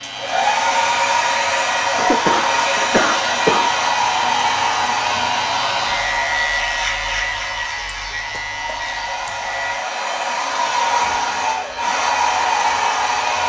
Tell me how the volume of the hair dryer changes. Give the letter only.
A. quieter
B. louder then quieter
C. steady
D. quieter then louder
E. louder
D.